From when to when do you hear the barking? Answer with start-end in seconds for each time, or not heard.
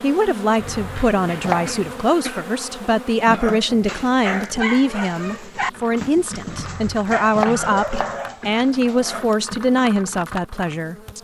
3.2-9.3.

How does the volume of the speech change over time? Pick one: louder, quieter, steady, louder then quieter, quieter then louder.
steady.